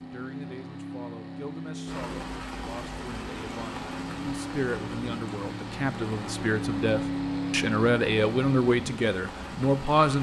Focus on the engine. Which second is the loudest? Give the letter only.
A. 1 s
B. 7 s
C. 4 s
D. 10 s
B.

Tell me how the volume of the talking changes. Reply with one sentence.
The volume of the talking goes up.